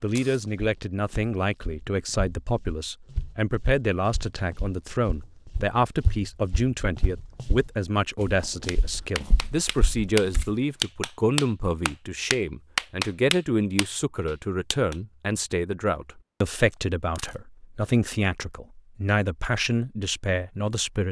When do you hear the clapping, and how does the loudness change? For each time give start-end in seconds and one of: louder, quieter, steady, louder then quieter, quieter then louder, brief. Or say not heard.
8.7-14.9 louder then quieter.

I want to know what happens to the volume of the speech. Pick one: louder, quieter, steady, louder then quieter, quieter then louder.
steady.